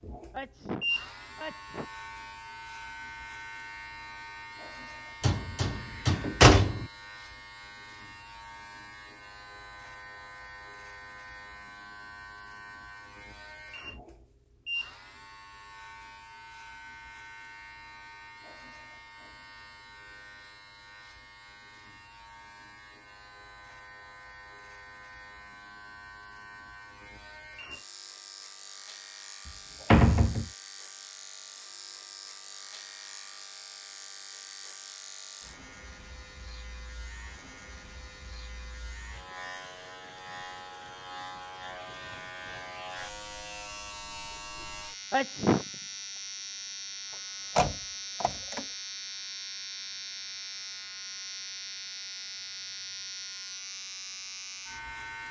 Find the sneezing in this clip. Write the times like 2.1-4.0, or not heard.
0.3-1.9, 45.1-45.6.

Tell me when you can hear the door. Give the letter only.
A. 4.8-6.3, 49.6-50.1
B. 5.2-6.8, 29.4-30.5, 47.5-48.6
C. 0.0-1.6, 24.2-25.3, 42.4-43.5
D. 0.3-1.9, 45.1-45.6
B.